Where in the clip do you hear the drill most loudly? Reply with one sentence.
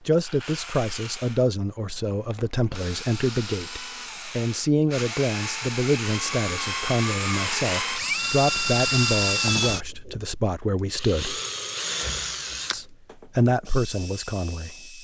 The loudest moment of the drill is at 9 seconds.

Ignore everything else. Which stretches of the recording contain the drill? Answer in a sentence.
The drill can be heard from 0.0 to 15.0 s.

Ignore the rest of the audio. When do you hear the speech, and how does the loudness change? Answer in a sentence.
The speech can be heard from 0.1 to 11.4 s, at a steady volume; and briefly from 12.7 to 15.0 s.